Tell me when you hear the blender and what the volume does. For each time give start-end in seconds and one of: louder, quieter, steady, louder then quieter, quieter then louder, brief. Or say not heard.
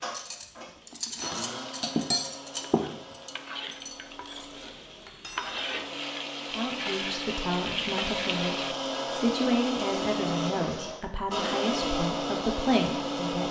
0.0-13.4 quieter then louder.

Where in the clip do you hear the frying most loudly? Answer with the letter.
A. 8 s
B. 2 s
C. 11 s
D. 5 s
A.